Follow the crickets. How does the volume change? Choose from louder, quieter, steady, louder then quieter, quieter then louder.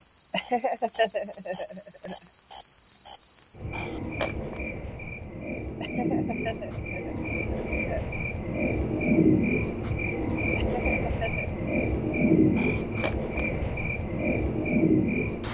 louder.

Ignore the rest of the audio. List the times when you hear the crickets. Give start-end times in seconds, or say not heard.
0.0-15.4.